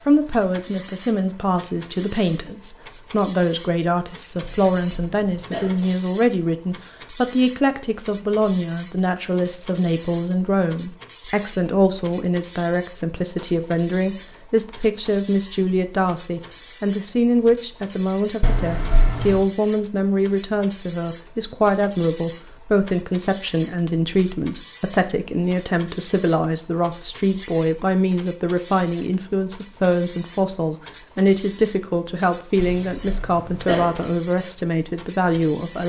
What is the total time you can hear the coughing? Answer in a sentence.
You can hear the coughing for 4 seconds altogether.